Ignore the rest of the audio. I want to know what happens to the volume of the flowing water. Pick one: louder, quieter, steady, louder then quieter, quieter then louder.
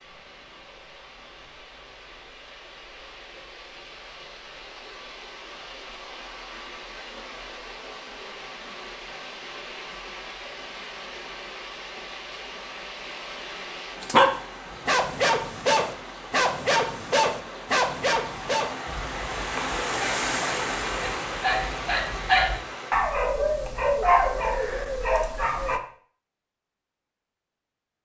louder.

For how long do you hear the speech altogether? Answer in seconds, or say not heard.
not heard.